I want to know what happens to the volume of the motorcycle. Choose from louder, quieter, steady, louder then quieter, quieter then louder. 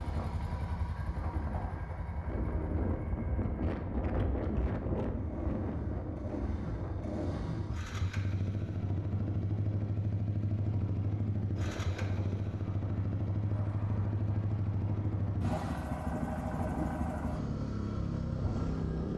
louder.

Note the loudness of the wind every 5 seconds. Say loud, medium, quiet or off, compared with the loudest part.
loud, loud, medium, medium.